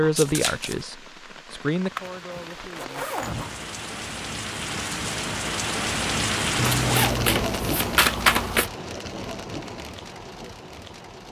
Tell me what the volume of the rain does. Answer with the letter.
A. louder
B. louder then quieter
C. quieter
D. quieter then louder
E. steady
B.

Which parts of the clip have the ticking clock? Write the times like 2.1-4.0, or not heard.
not heard.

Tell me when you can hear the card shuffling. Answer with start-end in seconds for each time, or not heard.
0.1-0.8, 6.5-8.7.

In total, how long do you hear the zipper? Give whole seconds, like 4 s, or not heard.
2 s.